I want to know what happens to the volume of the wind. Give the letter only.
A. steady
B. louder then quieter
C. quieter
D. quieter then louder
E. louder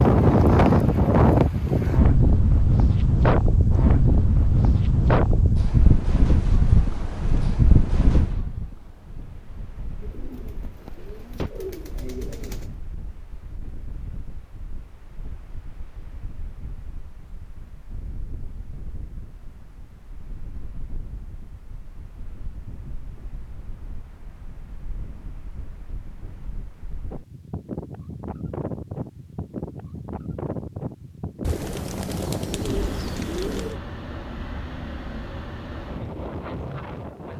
D.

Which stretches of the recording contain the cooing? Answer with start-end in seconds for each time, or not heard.
10.0-12.8, 31.4-33.8.